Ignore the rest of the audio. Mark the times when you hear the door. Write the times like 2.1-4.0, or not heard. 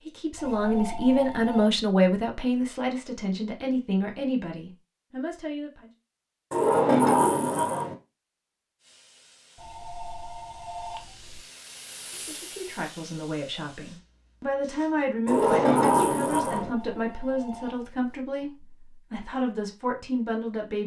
6.5-8.0, 15.2-16.7.